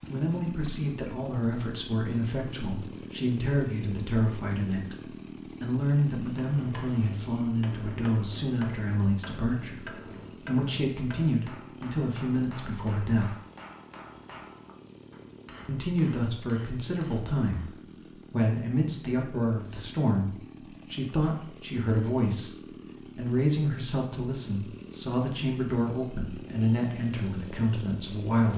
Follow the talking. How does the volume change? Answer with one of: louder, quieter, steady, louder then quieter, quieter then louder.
steady.